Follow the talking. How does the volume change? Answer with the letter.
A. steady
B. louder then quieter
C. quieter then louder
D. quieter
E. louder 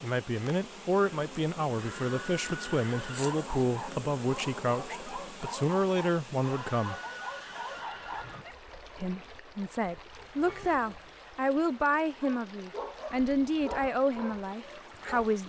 A.